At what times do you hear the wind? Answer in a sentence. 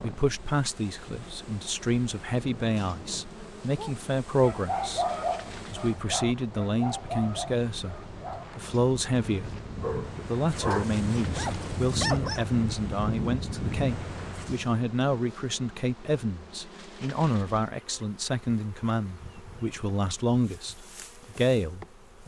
You can hear the wind from 0.0 to 14.8 s.